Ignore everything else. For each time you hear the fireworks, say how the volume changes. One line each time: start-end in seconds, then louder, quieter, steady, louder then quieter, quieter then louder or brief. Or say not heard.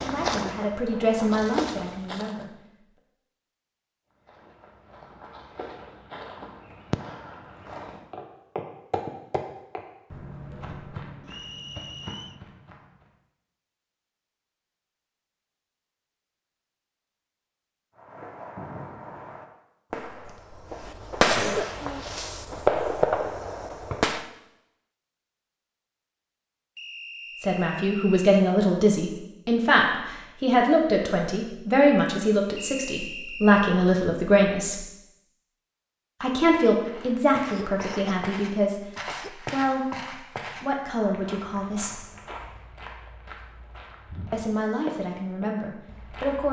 17.9-24.2 louder.